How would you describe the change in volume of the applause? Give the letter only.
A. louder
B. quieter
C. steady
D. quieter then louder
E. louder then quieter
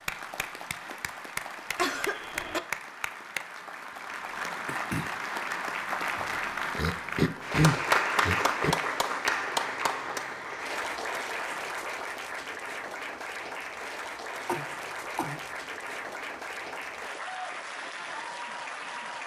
E.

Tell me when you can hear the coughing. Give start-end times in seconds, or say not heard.
1.8-2.6, 6.8-8.8, 14.4-15.4.